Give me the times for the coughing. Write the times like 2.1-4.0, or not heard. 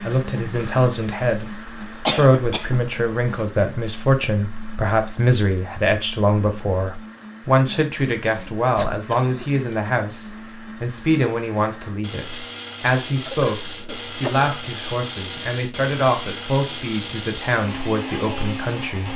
2.0-2.8, 8.0-9.7, 13.2-14.5.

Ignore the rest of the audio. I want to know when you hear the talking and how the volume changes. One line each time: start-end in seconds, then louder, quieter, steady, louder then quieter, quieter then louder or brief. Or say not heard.
0.1-1.6 brief
2.1-19.1 steady.